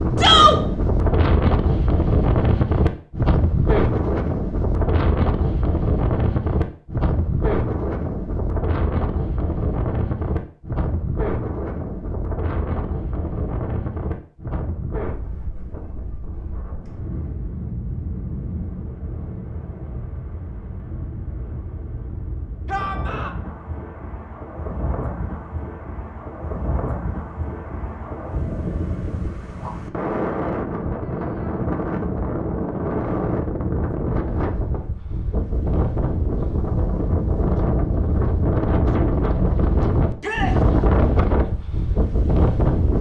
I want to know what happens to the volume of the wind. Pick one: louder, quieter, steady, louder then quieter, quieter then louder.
quieter then louder.